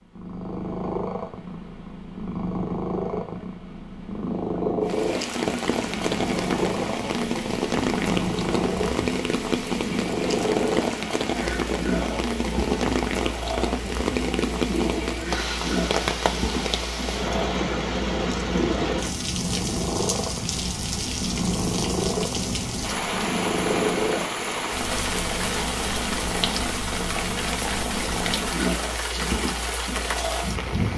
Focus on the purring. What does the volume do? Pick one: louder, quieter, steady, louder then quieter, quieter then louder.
steady.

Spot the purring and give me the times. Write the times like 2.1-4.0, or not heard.
0.1-30.6.